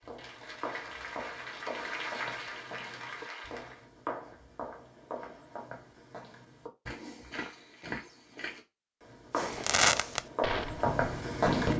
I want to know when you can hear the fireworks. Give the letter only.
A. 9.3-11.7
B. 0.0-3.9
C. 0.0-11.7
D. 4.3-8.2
A.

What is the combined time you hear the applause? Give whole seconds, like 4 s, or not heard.
4 s.